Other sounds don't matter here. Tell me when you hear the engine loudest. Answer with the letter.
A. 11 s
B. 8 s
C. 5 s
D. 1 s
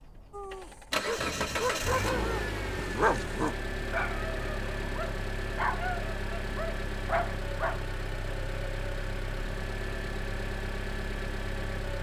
D.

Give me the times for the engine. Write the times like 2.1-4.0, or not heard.
0.0-11.9.